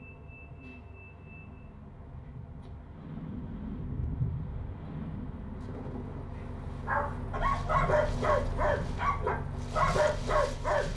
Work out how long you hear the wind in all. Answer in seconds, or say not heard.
11 s.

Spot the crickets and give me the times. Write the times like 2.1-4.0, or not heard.
not heard.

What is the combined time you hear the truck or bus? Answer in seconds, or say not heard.
11 s.